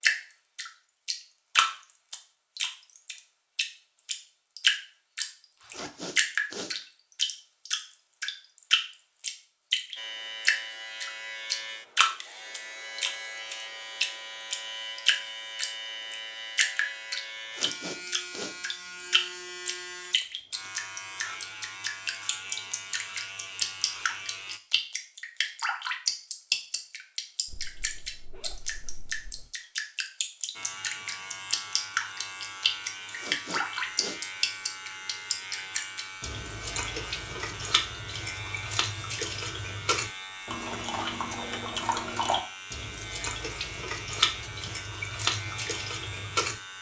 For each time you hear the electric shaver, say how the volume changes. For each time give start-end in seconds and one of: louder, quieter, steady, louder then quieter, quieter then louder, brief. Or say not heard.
9.9-24.6 steady
30.5-46.7 steady.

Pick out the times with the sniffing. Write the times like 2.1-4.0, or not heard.
5.7-6.8, 17.5-18.6, 33.1-34.2.